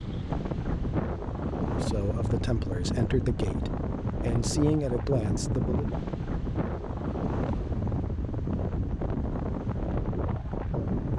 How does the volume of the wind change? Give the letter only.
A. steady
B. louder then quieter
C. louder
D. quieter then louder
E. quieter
A.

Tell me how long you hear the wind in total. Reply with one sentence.
The wind can be heard for 11 seconds in total.